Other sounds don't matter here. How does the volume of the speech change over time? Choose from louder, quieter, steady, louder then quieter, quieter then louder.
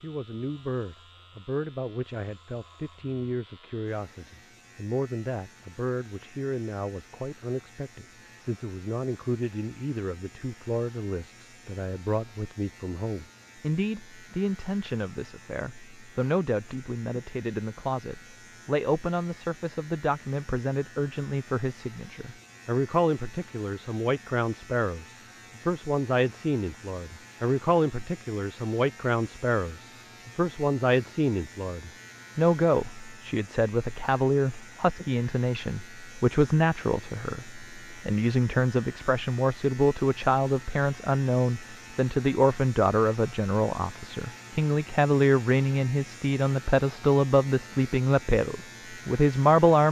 louder.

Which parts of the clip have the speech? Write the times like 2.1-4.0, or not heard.
0.0-49.8.